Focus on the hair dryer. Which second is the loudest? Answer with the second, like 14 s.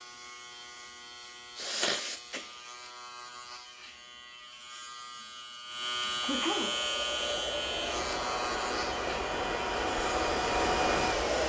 11 s.